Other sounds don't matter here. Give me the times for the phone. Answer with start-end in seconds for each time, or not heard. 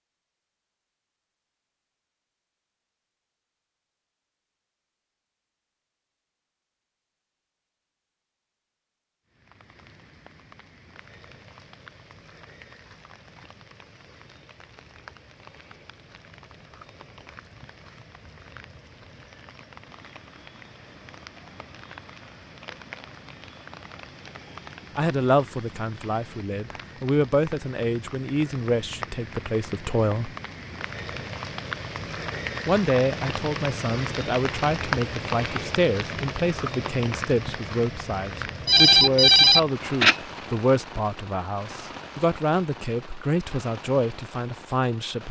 38.6-40.1.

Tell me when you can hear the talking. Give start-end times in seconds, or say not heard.
24.9-30.3, 32.6-45.2.